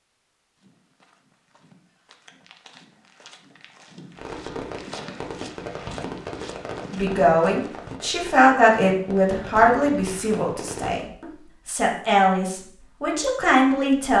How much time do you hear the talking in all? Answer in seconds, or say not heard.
7 s.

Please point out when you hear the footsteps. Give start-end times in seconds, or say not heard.
0.6-8.0.